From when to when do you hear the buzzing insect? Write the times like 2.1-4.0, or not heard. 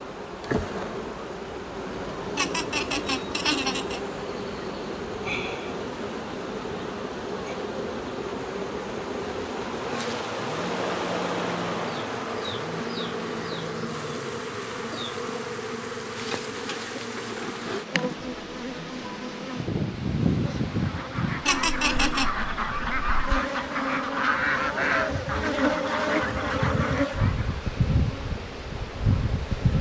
0.0-29.7.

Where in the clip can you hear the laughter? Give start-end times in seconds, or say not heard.
2.4-4.0, 21.4-22.3.